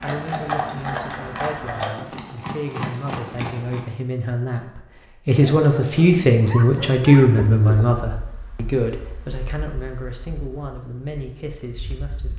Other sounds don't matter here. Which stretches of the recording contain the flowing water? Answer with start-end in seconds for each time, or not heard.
not heard.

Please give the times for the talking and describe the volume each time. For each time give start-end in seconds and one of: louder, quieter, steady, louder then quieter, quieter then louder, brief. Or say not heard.
0.0-12.3 louder then quieter.